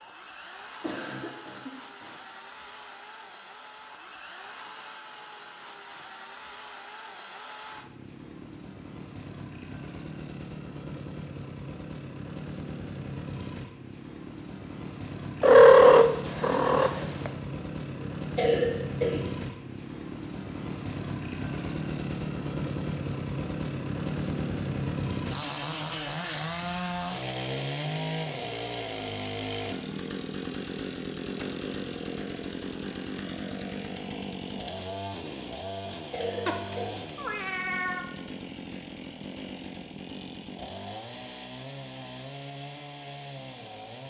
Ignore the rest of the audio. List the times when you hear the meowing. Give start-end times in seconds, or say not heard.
15.4-17.3, 36.5-38.1.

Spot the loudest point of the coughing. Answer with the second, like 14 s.
19 s.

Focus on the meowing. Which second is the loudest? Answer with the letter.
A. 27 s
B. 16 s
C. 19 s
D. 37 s
B.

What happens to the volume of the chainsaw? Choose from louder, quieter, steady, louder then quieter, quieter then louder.
louder then quieter.